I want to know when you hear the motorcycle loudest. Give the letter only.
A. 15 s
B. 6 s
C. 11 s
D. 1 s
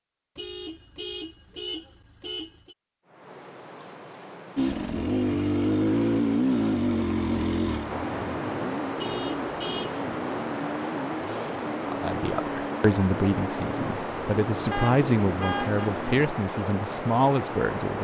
B.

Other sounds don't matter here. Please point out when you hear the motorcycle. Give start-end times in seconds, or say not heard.
4.5-16.2.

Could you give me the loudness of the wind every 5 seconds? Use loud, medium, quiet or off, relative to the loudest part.
quiet, loud, loud, loud.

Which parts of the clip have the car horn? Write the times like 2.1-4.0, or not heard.
0.3-2.8, 8.9-9.9, 14.7-15.9.